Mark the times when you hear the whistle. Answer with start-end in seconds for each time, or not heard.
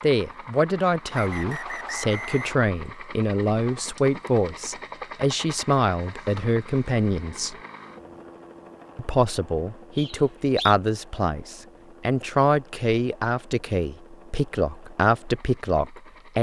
1.1-2.6, 9.9-10.8.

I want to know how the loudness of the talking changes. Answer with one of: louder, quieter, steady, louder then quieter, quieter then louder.
steady.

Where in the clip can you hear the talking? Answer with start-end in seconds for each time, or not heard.
0.0-7.5, 8.9-16.3.